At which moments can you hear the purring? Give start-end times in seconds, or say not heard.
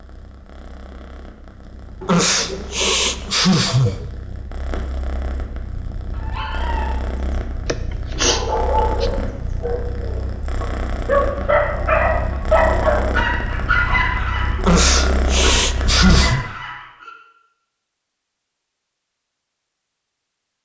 0.0-16.4.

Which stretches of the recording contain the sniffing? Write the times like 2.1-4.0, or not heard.
2.0-4.0, 7.7-9.1, 14.6-16.4.